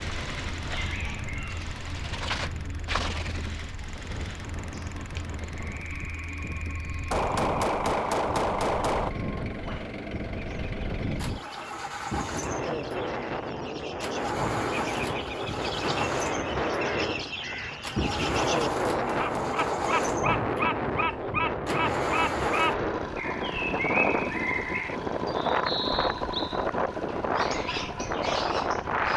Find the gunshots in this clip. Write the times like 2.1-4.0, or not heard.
7.1-9.1, 18.5-20.4.